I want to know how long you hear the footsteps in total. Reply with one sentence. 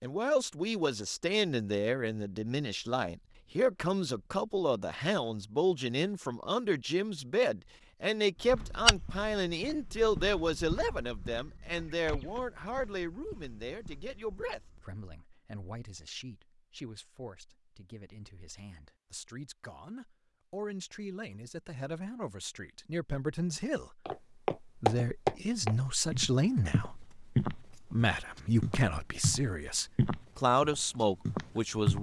You can hear the footsteps for 14 seconds altogether.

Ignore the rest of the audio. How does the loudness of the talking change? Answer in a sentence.
The volume of the talking goes down, then up.